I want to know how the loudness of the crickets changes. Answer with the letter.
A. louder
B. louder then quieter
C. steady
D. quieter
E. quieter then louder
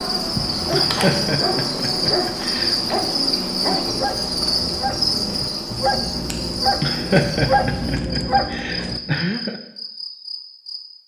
D.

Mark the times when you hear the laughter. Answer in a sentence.
The laughter can be heard from 0.7 to 2.8 s and from 6.8 to 9.6 s.